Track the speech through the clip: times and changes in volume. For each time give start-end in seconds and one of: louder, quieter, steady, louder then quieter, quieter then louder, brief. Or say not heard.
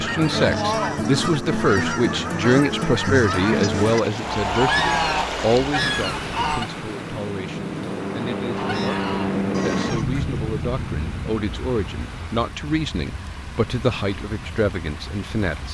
0.0-15.6 quieter then louder.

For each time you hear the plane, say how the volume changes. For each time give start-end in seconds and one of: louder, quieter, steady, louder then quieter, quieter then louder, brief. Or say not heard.
0.0-15.6 louder then quieter.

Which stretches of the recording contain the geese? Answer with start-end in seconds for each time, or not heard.
0.0-6.7, 8.5-10.2.